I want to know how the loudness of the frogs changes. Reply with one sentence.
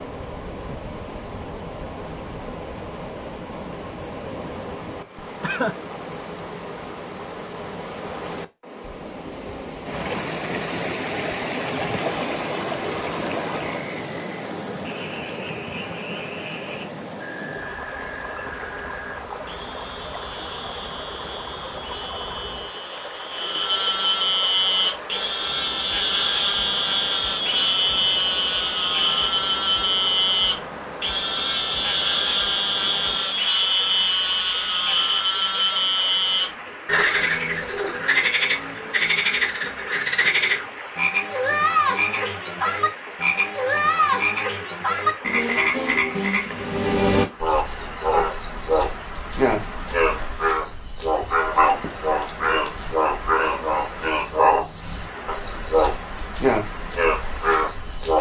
The loudness of the frogs goes up.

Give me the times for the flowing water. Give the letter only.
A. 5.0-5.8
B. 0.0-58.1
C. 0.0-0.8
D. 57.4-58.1
B.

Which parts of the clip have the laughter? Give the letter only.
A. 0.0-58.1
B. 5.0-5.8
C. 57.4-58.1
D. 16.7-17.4
B.